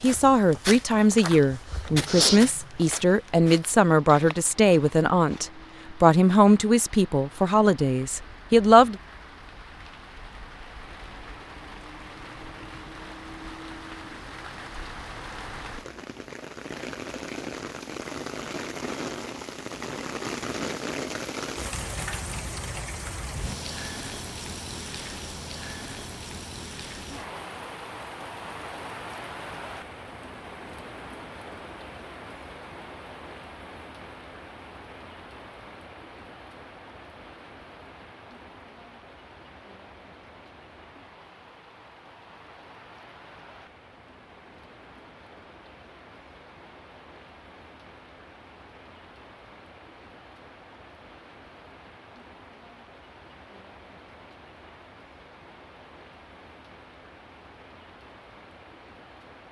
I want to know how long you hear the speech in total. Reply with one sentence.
The speech can be heard for 9 seconds in total.